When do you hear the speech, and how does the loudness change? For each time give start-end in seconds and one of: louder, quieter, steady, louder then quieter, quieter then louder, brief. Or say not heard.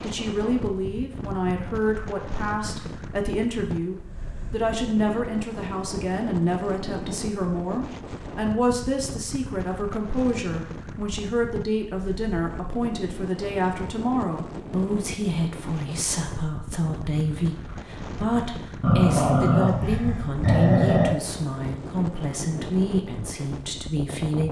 0.0-24.4 steady.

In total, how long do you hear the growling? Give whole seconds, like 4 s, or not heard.
2 s.